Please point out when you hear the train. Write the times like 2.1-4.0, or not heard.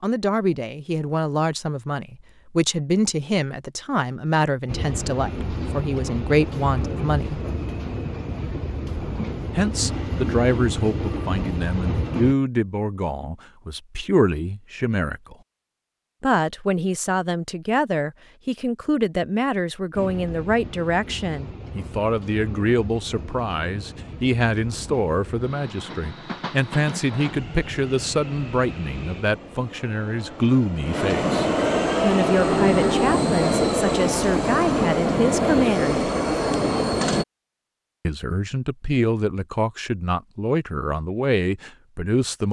4.7-12.3, 19.9-37.2.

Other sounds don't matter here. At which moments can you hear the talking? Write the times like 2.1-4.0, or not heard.
0.0-7.4, 9.5-15.3, 16.2-36.0, 38.0-42.4.